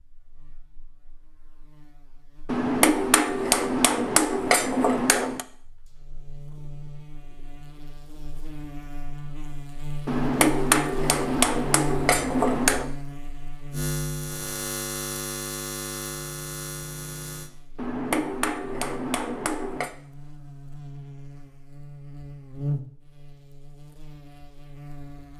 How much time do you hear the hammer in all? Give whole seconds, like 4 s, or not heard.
8 s.